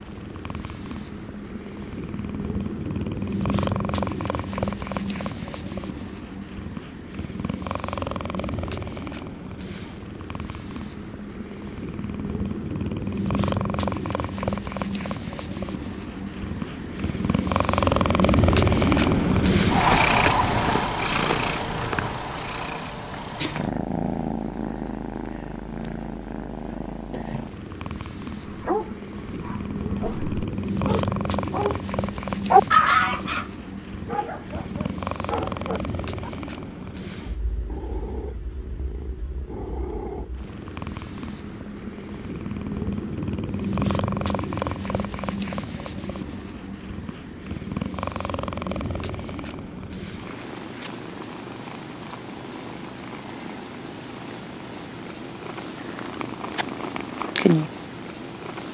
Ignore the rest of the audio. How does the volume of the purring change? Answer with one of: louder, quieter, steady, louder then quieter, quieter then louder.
louder then quieter.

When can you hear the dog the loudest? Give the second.
33 s.